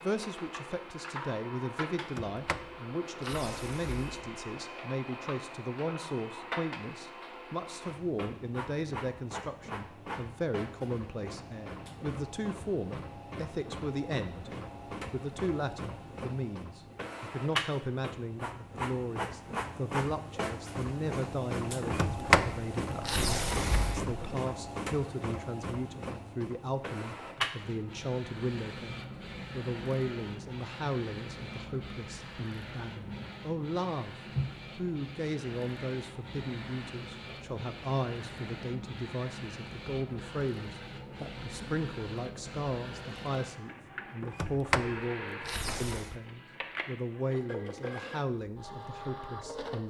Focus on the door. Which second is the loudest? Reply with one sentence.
The volume of the door peaks at 22 seconds.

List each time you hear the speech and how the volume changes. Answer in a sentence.
The speech can be heard from 0.0 to 14.5 s, at a steady volume; from 15.1 to 34.1 s, at a steady volume; and from 34.8 to 49.8 s, at a steady volume.